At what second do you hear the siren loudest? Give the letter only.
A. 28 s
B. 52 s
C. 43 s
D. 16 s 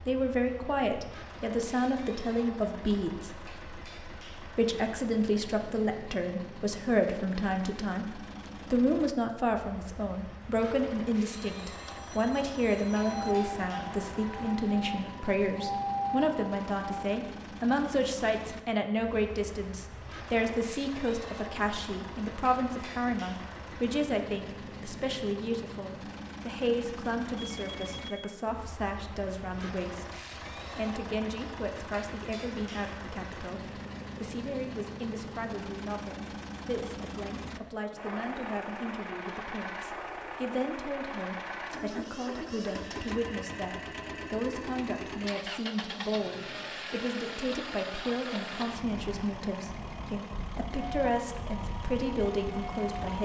D.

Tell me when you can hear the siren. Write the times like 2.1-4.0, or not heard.
12.9-17.2, 50.9-53.2.